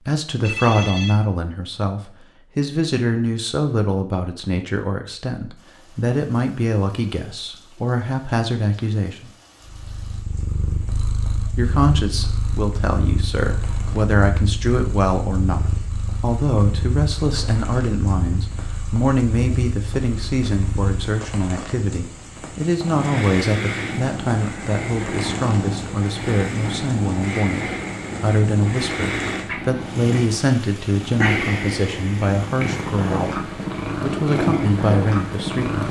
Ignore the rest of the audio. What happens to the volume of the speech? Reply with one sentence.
The loudness of the speech stays about the same.